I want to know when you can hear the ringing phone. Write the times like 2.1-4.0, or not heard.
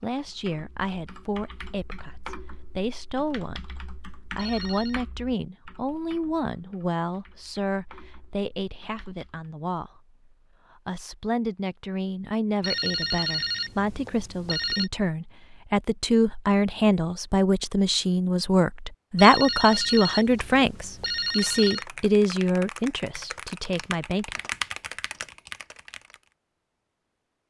4.3-5.0, 12.6-14.9, 19.1-21.9.